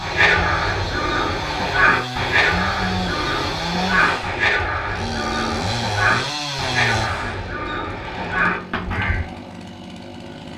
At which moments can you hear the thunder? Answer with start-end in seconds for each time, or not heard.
not heard.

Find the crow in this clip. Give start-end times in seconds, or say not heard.
0.0-9.3.